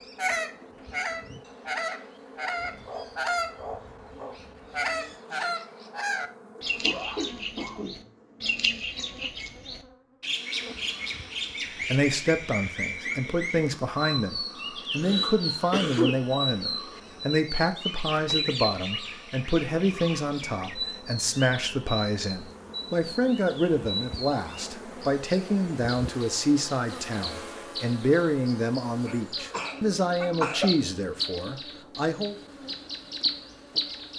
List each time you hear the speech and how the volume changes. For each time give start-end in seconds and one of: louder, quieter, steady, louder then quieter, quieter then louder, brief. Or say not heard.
11.9-32.4 steady.